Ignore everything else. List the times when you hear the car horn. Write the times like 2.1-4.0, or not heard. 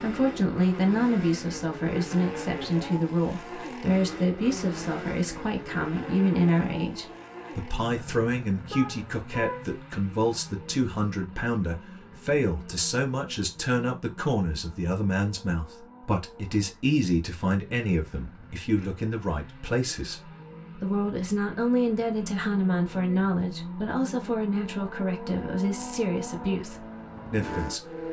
8.7-9.8.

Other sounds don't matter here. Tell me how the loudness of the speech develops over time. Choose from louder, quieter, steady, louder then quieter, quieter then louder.
steady.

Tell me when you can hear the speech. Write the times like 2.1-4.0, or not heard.
0.0-28.0.